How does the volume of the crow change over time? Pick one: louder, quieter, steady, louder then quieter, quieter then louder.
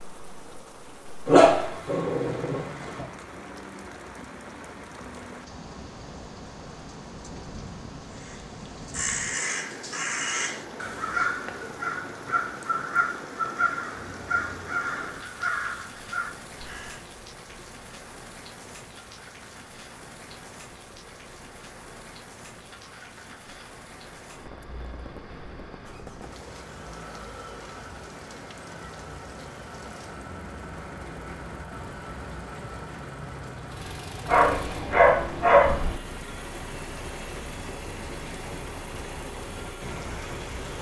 steady.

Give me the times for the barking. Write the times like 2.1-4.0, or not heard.
1.2-3.0, 34.2-36.0.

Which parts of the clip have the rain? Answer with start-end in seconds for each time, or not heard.
0.0-40.7.